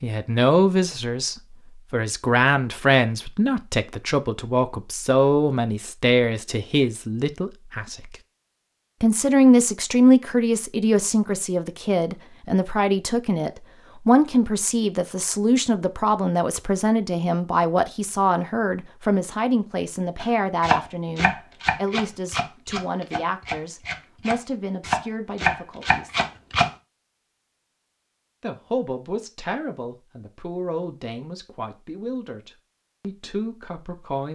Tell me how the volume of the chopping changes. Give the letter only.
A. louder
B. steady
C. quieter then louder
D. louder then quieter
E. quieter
C.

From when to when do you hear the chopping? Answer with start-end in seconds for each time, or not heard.
20.1-26.7.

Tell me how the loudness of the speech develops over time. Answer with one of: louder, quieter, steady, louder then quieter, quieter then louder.
quieter.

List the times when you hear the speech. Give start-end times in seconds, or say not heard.
0.0-8.2, 9.0-26.2, 28.4-34.3.